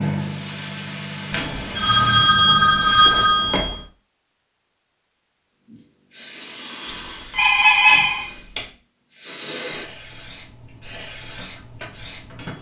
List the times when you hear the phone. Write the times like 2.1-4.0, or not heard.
1.3-3.8, 6.8-8.7.